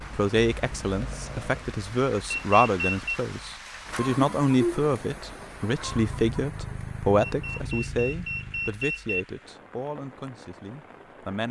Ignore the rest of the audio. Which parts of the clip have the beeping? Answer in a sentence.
The beeping can be heard from 2.3 to 3.1 s and from 7.2 to 9.2 s.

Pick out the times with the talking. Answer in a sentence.
You can hear the talking from 0.0 to 11.4 s.